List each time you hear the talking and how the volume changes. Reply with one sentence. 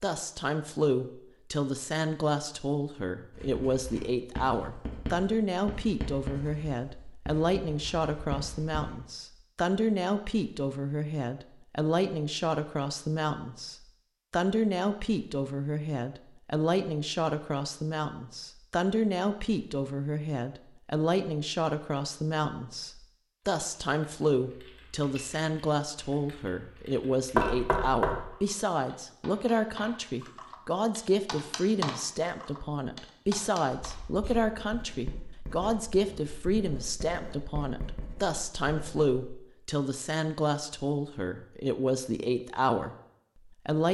The talking can be heard from 0.0 to 43.8 s, at a steady volume.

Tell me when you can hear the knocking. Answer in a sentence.
You can hear the knocking from 27.4 to 28.2 s.